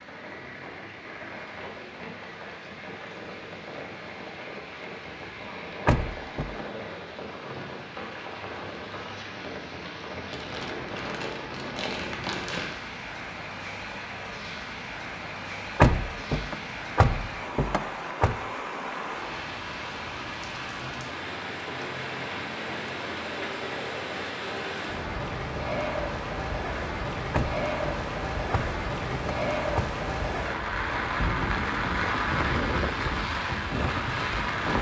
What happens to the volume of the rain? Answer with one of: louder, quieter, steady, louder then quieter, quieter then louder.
louder.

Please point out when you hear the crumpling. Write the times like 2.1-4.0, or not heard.
10.3-12.8.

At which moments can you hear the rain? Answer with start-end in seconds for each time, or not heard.
0.0-34.7.